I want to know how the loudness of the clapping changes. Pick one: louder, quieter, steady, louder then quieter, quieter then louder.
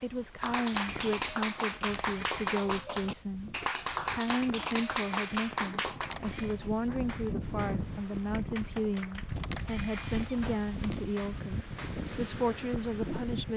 quieter.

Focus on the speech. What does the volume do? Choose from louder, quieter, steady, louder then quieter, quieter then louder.
steady.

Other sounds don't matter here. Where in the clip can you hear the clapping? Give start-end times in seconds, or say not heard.
0.4-12.1.